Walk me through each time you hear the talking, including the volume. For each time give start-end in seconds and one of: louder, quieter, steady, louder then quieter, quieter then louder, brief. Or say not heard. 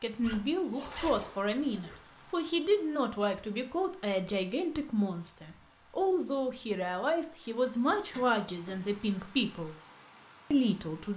0.0-9.8 steady
10.5-11.1 brief.